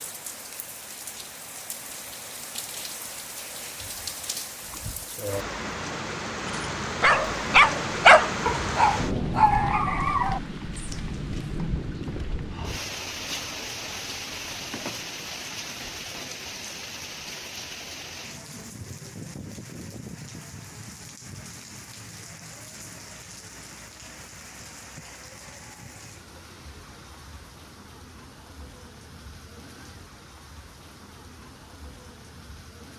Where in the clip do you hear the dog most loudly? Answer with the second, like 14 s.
8 s.